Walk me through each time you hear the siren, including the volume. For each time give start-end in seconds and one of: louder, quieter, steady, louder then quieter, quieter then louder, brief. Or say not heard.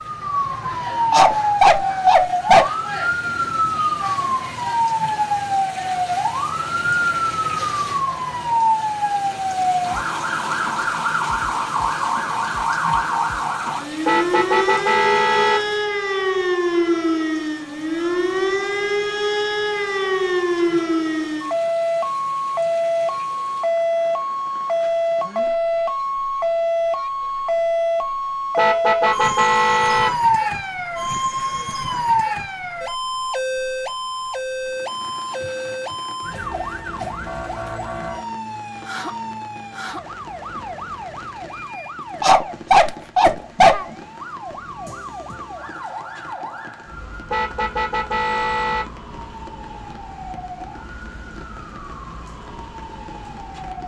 0.0-53.8 quieter.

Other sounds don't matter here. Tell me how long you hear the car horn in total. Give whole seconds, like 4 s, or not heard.
5 s.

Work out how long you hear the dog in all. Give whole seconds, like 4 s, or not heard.
3 s.